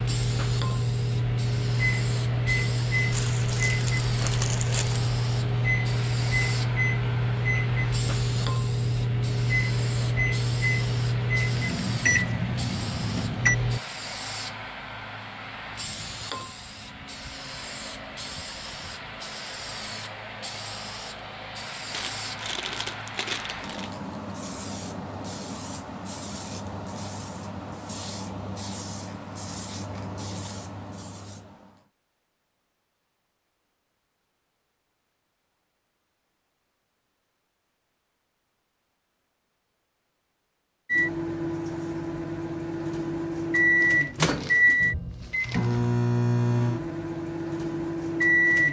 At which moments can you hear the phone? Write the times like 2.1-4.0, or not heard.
not heard.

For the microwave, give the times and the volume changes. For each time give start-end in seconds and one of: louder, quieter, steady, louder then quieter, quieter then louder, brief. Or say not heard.
0.0-13.8 steady
40.9-48.6 louder then quieter.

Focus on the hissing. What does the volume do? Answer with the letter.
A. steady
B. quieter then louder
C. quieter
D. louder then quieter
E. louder
A.